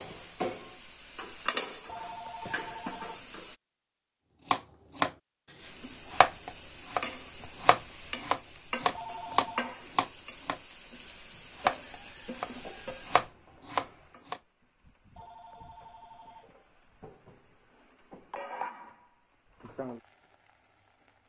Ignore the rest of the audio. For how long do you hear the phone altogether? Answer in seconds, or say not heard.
4 s.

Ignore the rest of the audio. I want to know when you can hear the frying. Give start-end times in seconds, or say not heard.
0.0-3.5, 5.6-21.2.